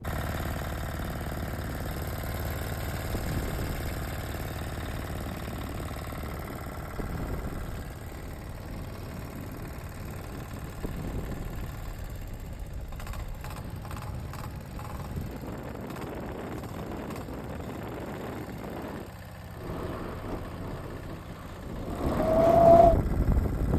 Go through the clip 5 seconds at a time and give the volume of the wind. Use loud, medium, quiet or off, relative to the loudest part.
quiet, quiet, quiet, quiet, loud.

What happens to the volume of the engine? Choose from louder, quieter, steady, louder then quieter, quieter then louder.
quieter.